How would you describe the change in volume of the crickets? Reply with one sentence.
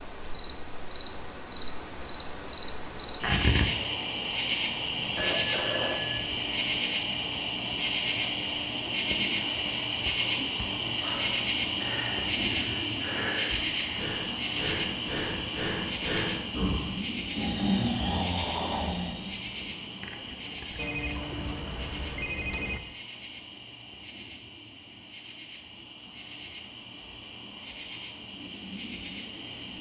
The volume of the crickets goes down.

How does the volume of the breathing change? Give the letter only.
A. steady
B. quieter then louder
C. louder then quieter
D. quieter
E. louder
E.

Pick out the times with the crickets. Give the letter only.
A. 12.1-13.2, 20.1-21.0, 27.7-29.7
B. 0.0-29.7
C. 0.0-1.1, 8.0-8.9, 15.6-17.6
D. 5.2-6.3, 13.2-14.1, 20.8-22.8
B.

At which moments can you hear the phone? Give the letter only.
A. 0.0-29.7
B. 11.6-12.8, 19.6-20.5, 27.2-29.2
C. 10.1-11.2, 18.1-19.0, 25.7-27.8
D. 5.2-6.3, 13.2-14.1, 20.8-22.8
D.